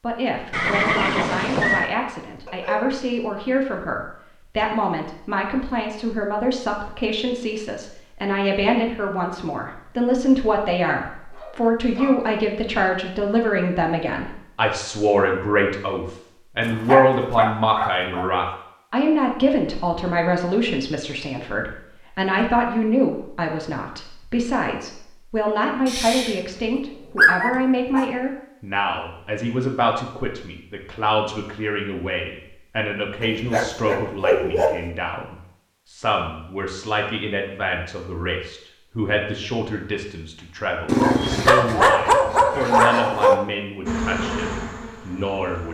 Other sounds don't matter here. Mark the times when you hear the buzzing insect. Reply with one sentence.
The buzzing insect can be heard from 43.9 to 45.6 s.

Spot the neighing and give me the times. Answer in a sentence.
The neighing can be heard from 0.5 to 1.9 s.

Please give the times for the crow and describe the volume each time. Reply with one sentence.
The crow can't be heard in this clip.